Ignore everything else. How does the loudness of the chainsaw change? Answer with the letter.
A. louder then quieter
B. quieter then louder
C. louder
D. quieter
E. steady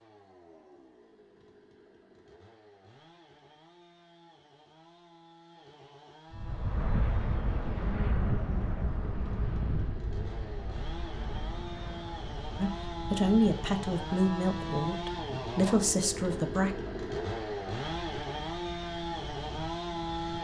C.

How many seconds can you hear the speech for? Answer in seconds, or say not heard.
4 s.